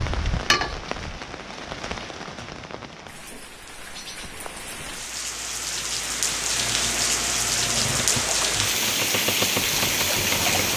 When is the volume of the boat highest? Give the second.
10 s.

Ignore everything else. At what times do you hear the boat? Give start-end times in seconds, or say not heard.
6.5-10.7.